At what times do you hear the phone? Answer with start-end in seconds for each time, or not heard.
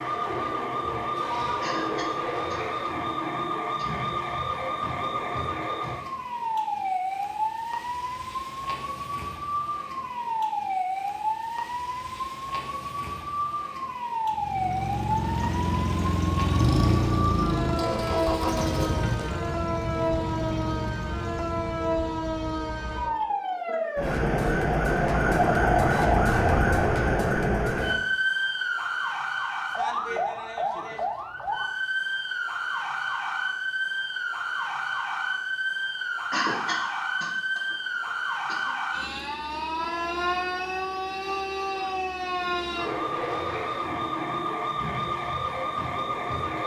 not heard.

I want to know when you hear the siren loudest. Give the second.
26 s.